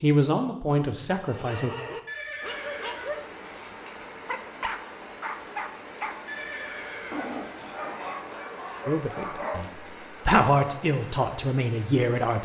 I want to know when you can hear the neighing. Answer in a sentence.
You can hear the neighing from 2.0 to 3.3 s and from 6.2 to 7.5 s.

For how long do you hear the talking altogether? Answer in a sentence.
You can hear the talking for 5 seconds altogether.